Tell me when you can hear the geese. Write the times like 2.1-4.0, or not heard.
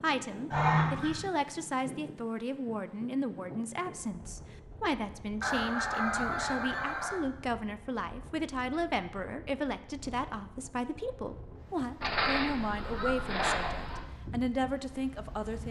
0.5-1.2, 5.4-7.2, 12.0-14.0.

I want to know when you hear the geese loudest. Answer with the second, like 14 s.
1 s.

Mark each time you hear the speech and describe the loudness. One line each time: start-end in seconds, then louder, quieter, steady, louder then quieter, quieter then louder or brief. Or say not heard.
0.0-15.6 steady.